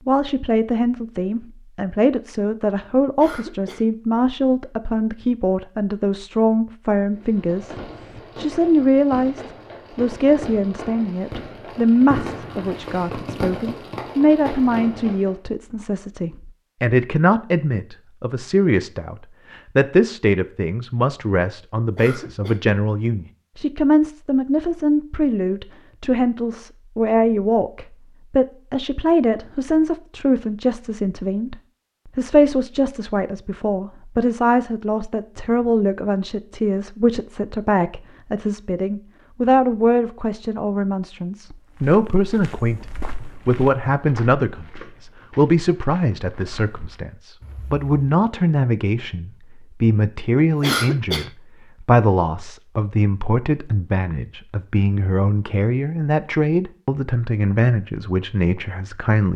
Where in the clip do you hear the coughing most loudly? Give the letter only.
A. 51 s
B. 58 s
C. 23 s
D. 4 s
A.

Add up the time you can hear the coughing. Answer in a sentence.
The coughing can be heard for 2 seconds in total.